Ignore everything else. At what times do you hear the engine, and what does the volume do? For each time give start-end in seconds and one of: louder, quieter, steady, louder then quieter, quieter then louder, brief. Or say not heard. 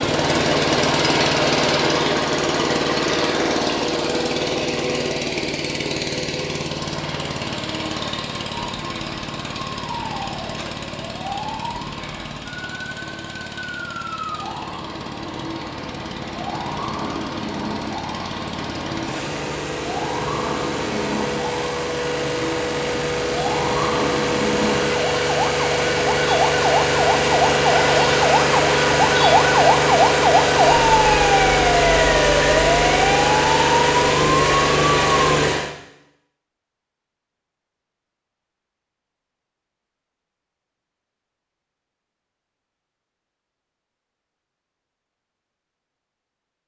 0.0-35.8 quieter then louder.